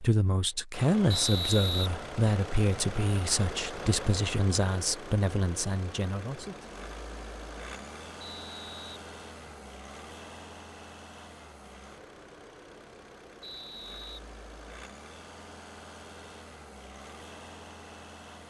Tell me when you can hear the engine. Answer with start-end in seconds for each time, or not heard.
0.0-18.4.